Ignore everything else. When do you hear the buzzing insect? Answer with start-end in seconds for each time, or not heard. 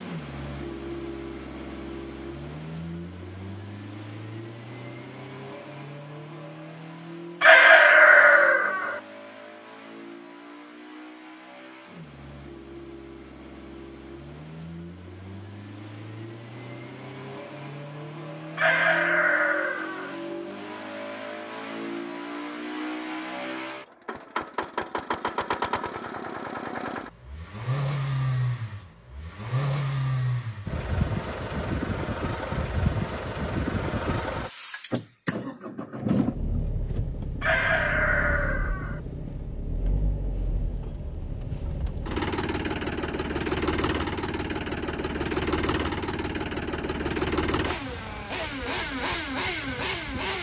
not heard.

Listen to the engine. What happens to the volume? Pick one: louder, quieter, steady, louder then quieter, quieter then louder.
louder.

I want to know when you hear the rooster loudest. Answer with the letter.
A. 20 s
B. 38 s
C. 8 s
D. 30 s
C.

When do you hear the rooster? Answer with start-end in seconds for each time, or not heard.
7.4-9.0, 18.6-20.1, 37.4-39.0.